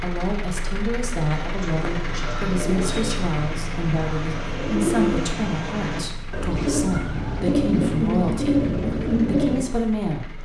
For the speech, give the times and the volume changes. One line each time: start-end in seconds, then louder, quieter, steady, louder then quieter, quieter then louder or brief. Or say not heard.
0.0-10.3 steady.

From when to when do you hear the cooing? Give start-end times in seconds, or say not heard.
1.3-9.6.